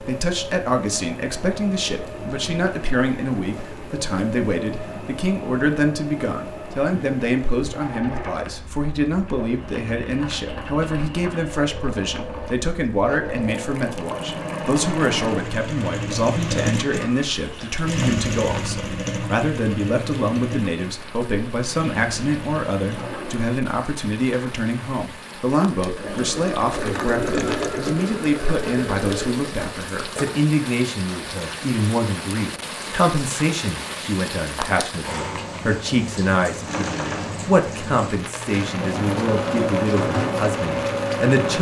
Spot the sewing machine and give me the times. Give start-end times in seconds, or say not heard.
0.0-23.5, 25.9-30.4, 36.6-41.5.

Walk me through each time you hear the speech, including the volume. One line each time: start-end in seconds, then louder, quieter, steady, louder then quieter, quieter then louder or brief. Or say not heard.
0.0-41.5 steady.